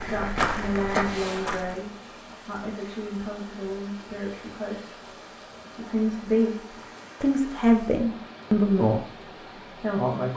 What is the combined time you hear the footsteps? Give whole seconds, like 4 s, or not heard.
2 s.